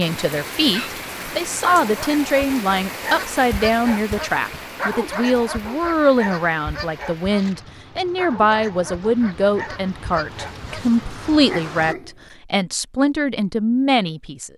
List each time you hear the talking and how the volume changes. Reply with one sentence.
You can hear the talking from 0.0 to 14.5 s, at a steady volume.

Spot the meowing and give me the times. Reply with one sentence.
The meowing can't be heard in this clip.